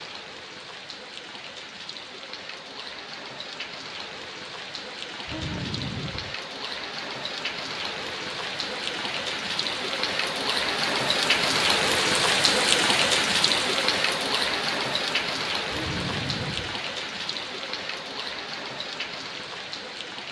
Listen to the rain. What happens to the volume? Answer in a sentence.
The volume of the rain goes up, then down.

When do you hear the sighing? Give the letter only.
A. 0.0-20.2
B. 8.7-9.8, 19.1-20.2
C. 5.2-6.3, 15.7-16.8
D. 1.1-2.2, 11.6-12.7
C.